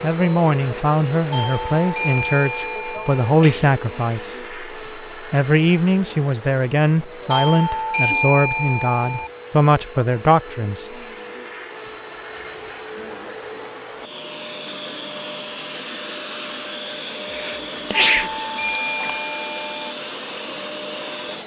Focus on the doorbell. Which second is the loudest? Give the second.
8 s.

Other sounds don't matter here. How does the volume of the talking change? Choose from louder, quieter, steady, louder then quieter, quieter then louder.
steady.